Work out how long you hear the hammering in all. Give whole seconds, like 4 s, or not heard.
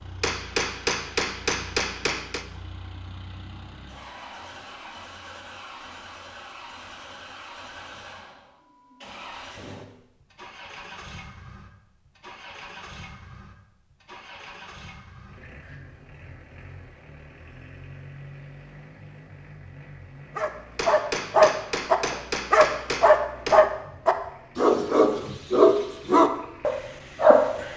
5 s.